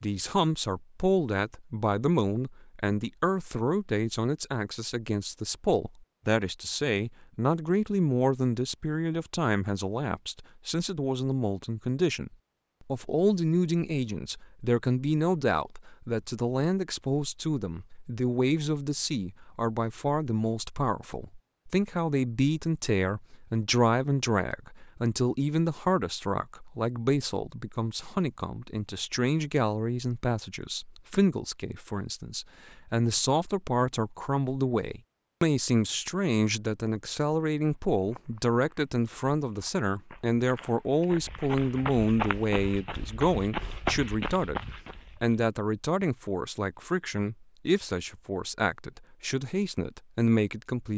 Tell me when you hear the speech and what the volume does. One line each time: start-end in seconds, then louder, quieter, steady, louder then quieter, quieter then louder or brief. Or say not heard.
0.0-50.9 steady.